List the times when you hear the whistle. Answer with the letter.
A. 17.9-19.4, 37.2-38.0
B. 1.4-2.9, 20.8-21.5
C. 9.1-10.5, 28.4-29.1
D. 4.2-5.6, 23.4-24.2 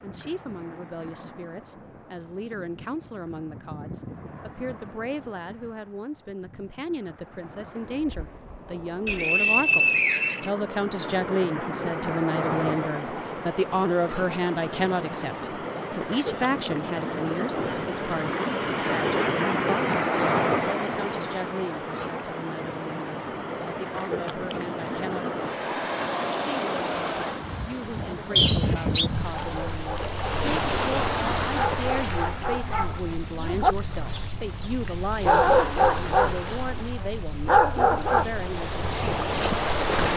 C.